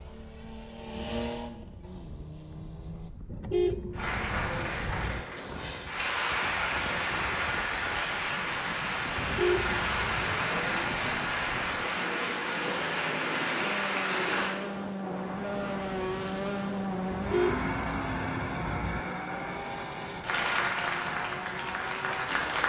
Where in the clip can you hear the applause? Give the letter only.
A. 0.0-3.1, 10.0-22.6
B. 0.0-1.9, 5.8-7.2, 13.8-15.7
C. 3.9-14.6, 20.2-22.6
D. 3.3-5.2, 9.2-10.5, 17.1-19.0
C.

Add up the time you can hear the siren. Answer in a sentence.
You can't hear the siren here.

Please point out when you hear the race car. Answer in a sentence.
The race car can be heard from 0.0 to 3.1 s and from 10.0 to 22.6 s.